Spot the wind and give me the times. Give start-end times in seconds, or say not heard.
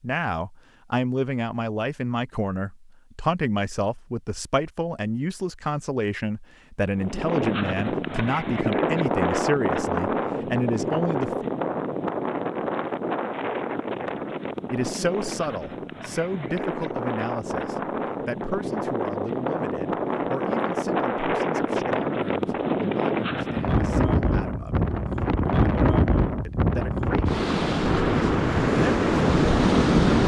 7.0-30.2.